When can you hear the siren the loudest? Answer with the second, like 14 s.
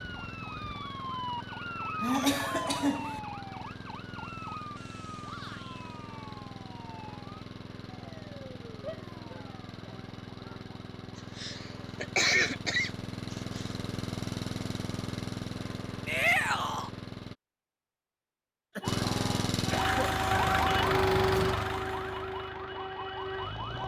21 s.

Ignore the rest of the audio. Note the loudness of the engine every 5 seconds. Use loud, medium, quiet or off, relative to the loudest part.
medium, medium, medium, loud, loud.